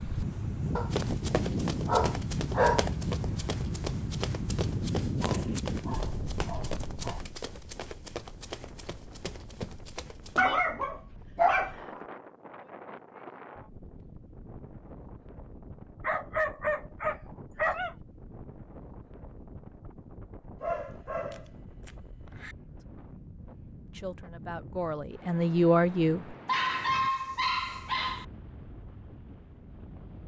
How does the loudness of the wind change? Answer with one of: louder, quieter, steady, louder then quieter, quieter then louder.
quieter.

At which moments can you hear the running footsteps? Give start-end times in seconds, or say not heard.
0.9-10.6.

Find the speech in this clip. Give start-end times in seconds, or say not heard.
23.9-26.2.